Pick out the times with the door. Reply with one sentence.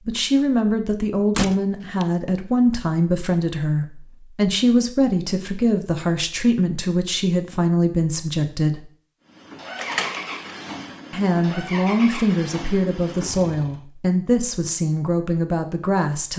You can hear the door from 1.4 to 2.0 s and from 9.8 to 10.4 s.